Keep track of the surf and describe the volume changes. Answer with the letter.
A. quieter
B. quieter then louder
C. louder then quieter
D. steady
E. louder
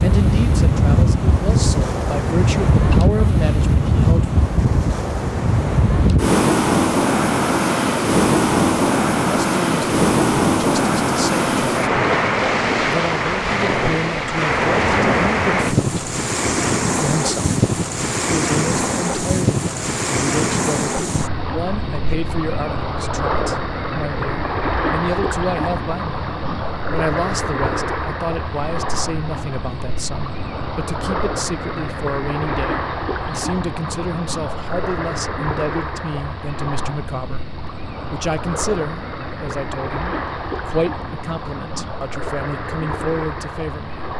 A.